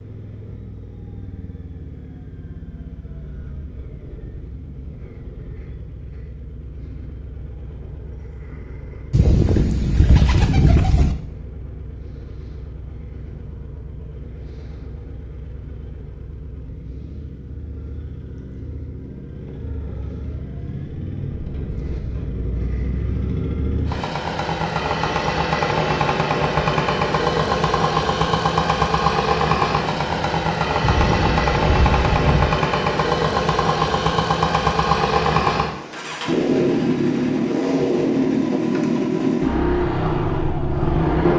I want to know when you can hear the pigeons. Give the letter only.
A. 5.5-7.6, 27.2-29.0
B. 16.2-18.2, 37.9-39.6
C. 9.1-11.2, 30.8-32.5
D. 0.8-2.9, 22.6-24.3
C.